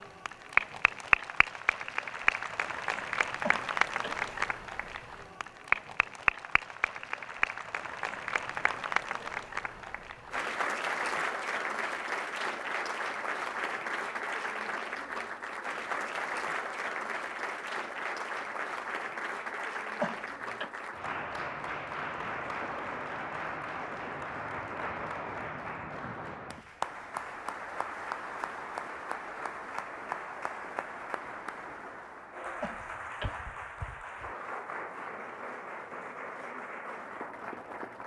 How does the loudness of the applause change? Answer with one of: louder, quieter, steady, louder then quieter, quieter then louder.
quieter.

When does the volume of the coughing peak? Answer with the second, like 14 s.
20 s.